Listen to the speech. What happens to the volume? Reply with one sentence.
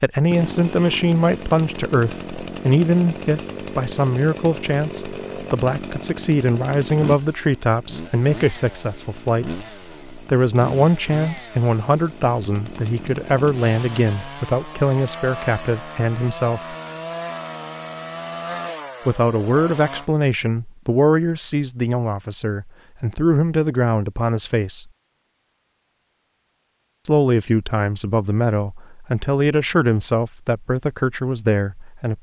The loudness of the speech stays about the same.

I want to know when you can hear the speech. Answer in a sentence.
The speech can be heard from 0.0 to 16.8 s, from 19.1 to 24.9 s and from 27.1 to 32.1 s.